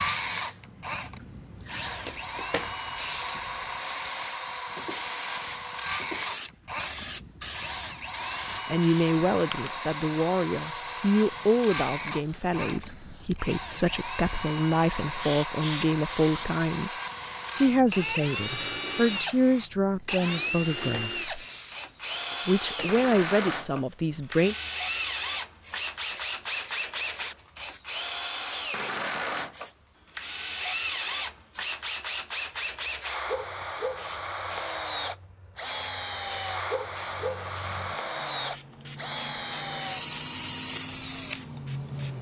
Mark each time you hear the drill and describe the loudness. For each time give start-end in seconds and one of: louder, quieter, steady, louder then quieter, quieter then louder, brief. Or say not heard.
0.0-42.1 steady.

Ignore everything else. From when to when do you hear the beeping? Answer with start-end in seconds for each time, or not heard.
not heard.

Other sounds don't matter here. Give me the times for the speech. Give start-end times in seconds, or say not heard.
8.7-16.9, 17.6-21.4, 22.4-24.6.